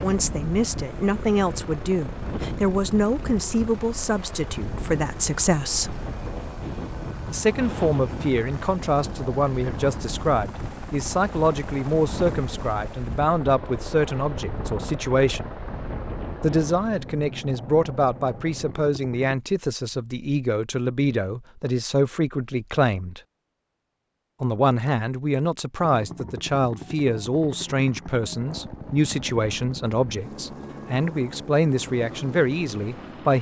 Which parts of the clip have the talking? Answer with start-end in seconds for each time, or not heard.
0.0-6.0, 7.2-15.5, 16.4-23.2, 24.4-33.3.